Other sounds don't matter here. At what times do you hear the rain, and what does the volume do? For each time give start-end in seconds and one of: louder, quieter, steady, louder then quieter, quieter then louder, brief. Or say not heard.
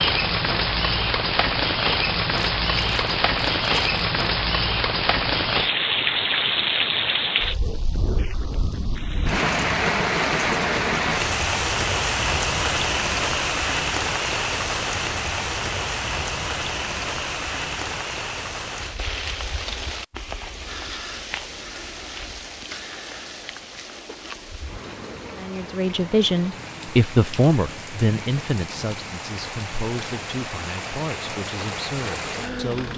0.0-32.9 quieter.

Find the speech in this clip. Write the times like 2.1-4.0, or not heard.
25.4-32.9.